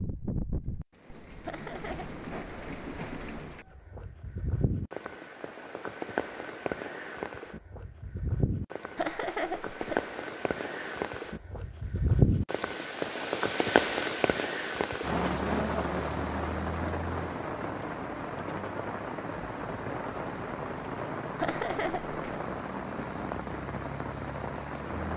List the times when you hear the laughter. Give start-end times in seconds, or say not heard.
1.4-2.1, 8.9-10.0, 21.4-22.1.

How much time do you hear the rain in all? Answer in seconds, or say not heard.
25 s.